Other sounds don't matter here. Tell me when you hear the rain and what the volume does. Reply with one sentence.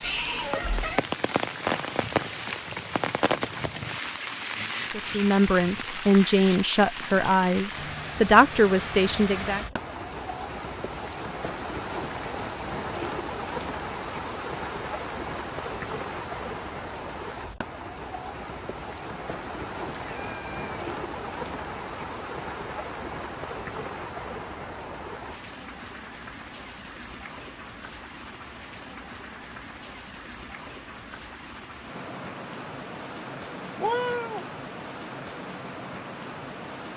You can hear the rain from 0.0 to 36.9 s, getting quieter.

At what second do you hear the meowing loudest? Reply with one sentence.
The volume of the meowing peaks at 34 seconds.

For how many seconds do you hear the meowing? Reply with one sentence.
The meowing can be heard for 2 seconds in total.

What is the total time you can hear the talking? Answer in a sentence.
The talking can be heard for 5 seconds in total.